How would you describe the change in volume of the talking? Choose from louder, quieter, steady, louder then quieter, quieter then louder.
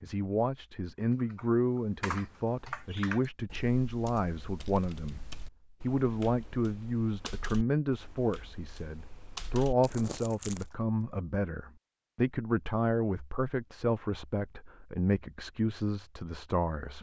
steady.